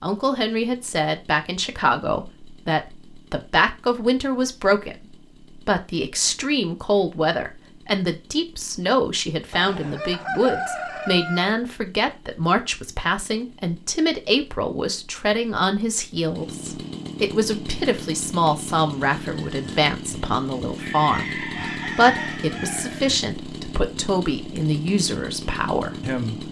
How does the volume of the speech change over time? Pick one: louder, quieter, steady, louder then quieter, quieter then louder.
steady.